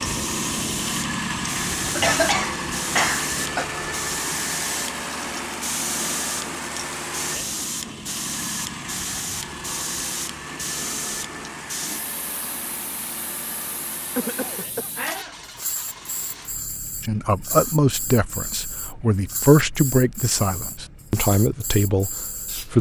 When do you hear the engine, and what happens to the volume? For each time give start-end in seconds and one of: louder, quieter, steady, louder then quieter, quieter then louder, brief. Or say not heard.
0.0-22.7 quieter.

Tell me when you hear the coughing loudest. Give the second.
2 s.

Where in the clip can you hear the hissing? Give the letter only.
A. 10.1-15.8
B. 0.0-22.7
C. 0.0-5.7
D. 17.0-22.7
B.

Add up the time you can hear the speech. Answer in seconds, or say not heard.
6 s.